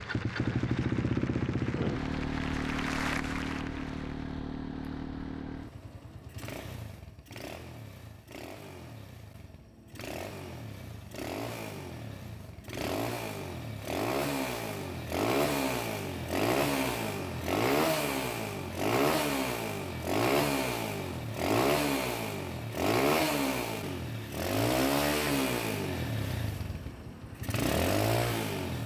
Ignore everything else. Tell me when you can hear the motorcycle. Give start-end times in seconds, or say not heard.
0.0-28.8.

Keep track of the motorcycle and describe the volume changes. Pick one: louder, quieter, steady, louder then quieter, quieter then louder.
quieter then louder.